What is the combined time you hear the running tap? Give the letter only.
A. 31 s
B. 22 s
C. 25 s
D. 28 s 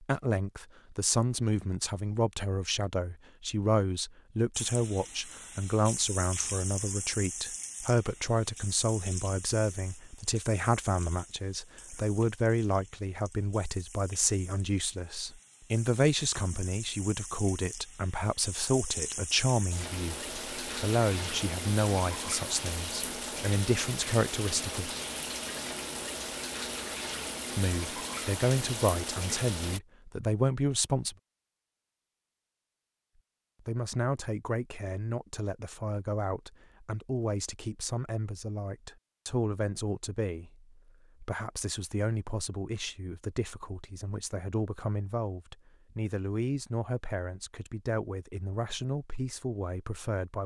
C.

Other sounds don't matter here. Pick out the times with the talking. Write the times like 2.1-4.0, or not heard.
0.0-24.9, 27.4-31.1, 33.6-50.4.